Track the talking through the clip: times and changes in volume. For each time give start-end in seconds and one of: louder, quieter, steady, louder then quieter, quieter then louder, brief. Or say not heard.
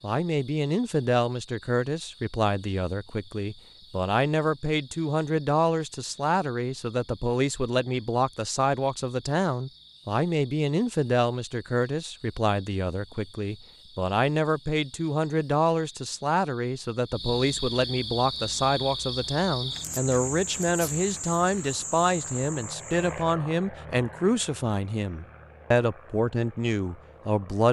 0.0-27.6 steady.